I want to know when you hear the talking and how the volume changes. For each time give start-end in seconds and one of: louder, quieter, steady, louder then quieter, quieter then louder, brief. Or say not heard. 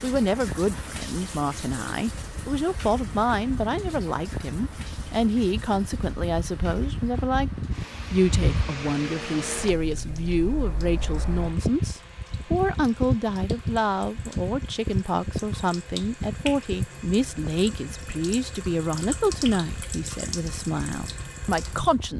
0.0-22.1 steady.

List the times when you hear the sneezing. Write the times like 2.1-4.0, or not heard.
not heard.